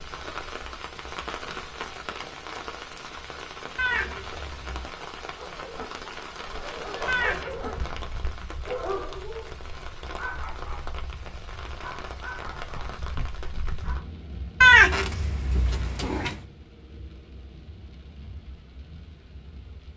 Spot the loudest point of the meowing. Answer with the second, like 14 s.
15 s.